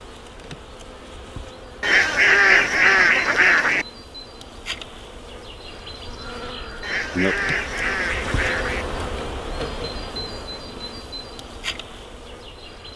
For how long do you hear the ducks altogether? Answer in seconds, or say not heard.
4 s.